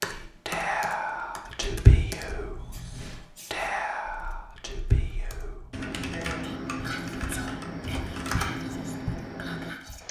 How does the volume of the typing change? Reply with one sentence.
The volume of the typing goes down, then up.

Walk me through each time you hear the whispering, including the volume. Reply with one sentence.
The whispering can be heard from 0.1 to 10.0 s, getting quieter.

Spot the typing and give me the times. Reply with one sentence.
You can hear the typing from 0.0 to 10.0 s.